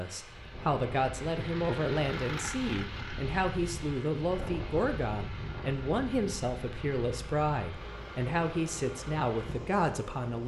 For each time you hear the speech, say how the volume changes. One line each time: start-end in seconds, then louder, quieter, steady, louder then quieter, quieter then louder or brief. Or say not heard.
0.0-10.4 steady.